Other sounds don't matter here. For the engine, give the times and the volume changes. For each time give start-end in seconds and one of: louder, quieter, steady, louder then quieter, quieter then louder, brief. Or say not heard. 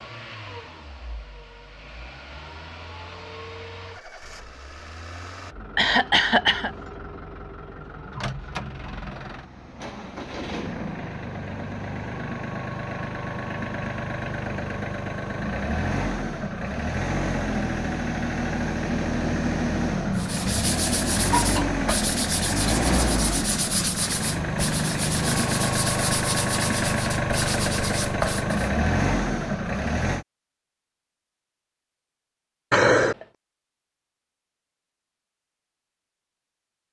0.0-30.2 louder.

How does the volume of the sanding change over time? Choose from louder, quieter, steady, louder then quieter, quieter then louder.
steady.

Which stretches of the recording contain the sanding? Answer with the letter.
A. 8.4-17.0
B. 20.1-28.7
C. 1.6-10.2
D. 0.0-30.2
B.